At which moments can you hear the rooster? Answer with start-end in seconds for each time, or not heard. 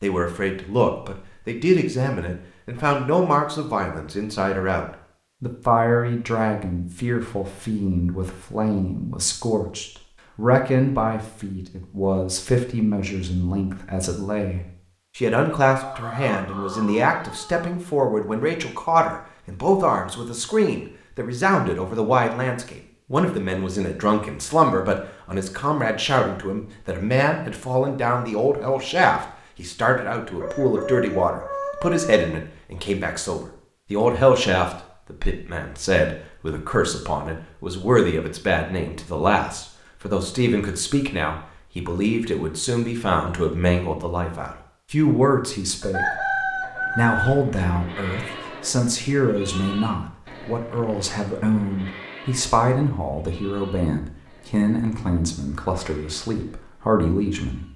15.7-17.7, 30.4-32.2, 45.8-47.3.